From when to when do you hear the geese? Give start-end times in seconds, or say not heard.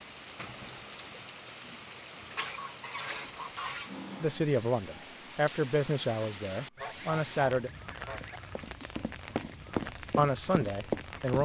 2.4-3.9, 6.8-8.4.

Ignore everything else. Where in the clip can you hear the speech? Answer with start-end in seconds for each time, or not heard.
4.2-7.7, 10.2-11.4.